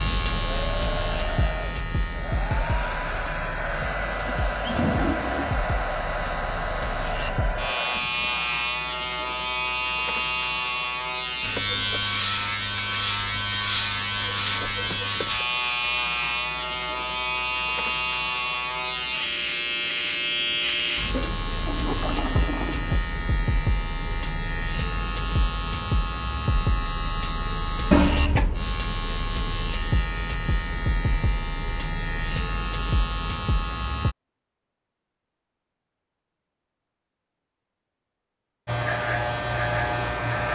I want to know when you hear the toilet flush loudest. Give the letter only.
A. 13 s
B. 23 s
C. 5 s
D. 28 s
D.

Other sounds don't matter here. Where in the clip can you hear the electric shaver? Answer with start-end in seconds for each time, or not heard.
0.0-34.1, 38.6-40.5.